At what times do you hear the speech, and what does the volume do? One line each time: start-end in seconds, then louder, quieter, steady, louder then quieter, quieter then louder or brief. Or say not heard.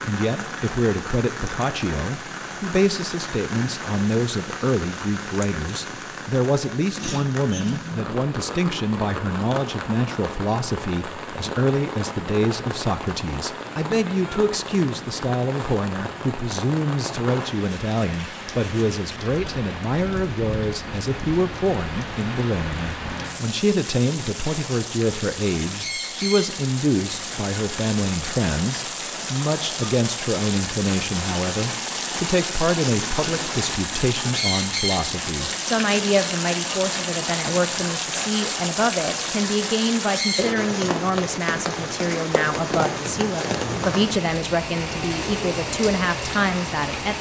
0.0-47.1 steady.